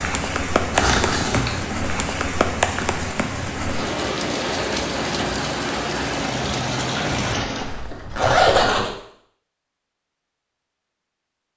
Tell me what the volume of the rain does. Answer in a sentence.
The loudness of the rain stays about the same.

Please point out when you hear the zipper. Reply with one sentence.
The zipper can be heard from 0.7 to 1.8 s and from 7.6 to 8.9 s.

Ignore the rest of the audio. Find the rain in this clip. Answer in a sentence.
The rain can be heard from 0.0 to 7.9 s.